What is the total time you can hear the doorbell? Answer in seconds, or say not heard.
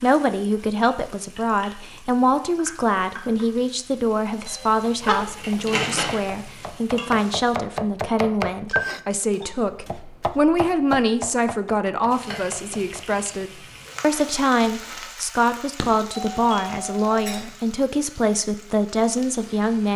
3 s.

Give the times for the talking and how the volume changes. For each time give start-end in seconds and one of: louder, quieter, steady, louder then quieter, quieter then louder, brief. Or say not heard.
0.0-19.9 steady.